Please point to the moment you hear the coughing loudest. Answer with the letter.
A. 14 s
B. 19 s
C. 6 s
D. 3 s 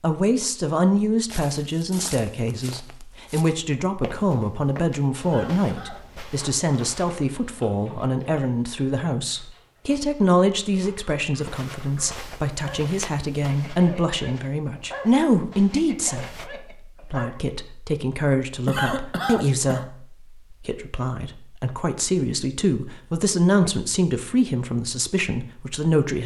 B.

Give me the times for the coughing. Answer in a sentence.
The coughing can be heard from 5.2 to 6.0 s and from 18.6 to 19.9 s.